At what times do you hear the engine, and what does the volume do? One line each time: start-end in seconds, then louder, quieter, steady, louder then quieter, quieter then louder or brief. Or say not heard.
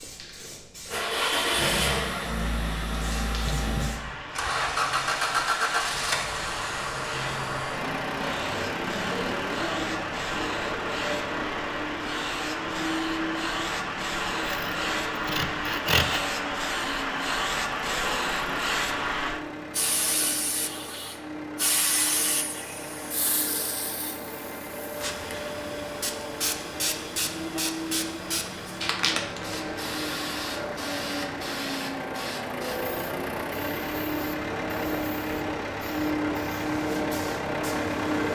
0.0-38.3 quieter then louder.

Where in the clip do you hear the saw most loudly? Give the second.
16 s.